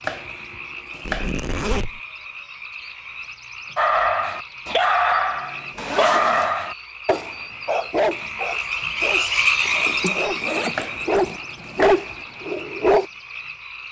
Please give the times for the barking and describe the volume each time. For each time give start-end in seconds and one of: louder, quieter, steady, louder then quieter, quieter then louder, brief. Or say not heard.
3.8-13.1 quieter then louder.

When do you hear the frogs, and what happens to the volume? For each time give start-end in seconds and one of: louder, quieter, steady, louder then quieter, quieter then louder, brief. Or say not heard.
0.0-13.8 louder then quieter.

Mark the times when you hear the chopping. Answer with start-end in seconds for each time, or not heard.
0.0-1.4, 10.7-12.2.